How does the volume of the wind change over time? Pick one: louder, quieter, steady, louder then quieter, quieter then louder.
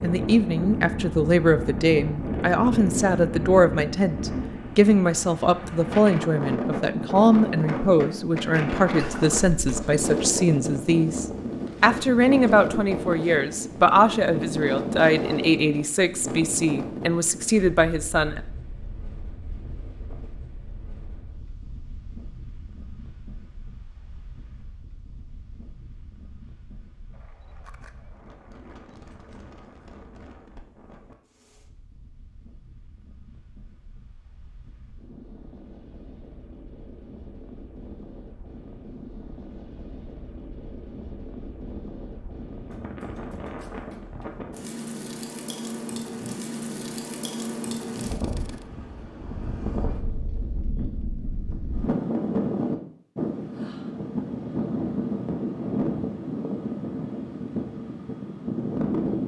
quieter then louder.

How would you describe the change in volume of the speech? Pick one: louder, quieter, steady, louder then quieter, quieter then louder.
steady.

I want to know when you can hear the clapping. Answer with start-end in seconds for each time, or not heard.
not heard.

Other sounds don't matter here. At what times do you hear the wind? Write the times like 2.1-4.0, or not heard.
0.0-59.2.